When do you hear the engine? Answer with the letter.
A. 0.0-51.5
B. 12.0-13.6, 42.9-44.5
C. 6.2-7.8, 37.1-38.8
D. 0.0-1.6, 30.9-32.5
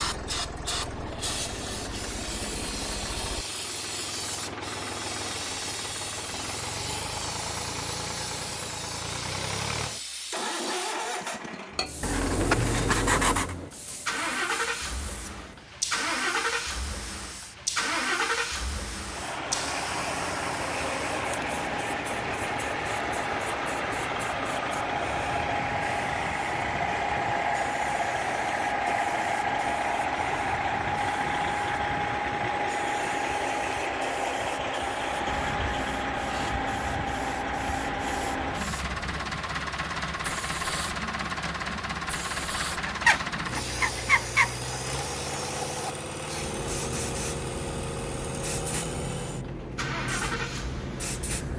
A.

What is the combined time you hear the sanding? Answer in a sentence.
You can hear the sanding for 3 seconds altogether.